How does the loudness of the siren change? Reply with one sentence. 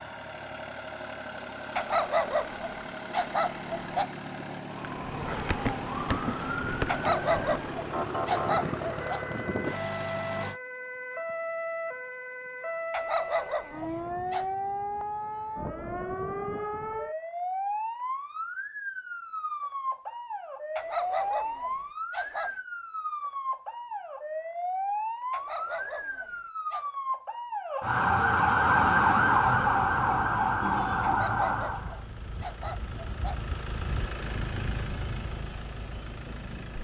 The loudness of the siren goes up.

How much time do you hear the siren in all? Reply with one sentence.
You can hear the siren for 27 seconds altogether.